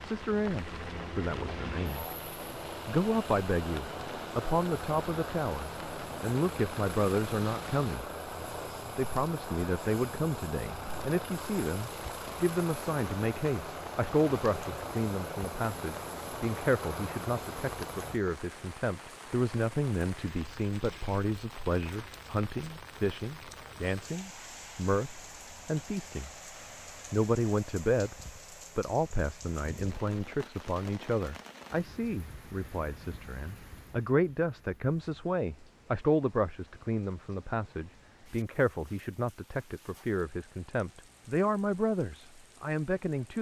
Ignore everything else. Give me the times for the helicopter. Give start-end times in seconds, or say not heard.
0.0-18.2.